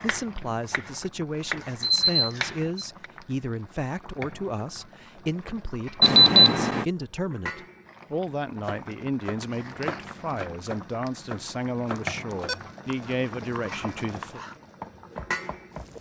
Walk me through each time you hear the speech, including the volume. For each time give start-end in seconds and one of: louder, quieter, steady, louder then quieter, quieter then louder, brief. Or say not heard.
0.0-14.4 steady.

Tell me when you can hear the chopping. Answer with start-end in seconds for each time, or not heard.
0.0-3.1, 8.7-15.9.